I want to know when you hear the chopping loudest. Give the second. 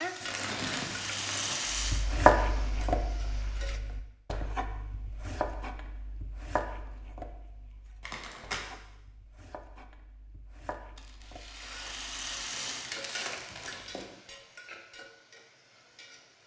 2 s.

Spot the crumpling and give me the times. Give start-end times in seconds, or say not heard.
0.2-1.6, 8.0-8.7, 12.3-14.1.